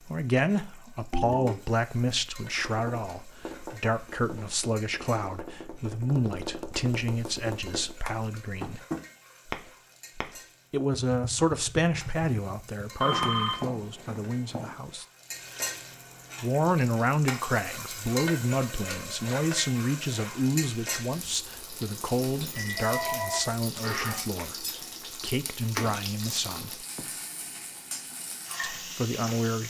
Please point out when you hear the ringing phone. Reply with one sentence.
The ringing phone can be heard from 1.1 to 1.6 s, from 13.0 to 14.8 s and from 22.4 to 24.1 s.